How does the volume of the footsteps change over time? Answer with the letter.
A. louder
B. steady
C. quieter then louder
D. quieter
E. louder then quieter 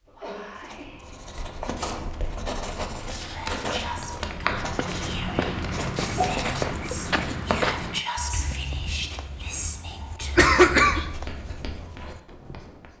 D.